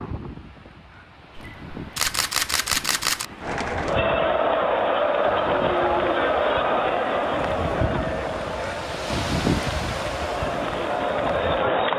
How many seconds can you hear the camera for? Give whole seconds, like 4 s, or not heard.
2 s.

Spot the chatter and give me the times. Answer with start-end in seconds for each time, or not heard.
3.4-11.9.